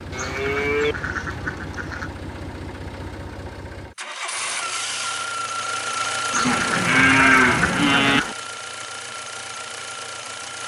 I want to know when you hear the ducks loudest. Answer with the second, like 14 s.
7 s.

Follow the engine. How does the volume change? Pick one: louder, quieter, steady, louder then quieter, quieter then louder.
louder then quieter.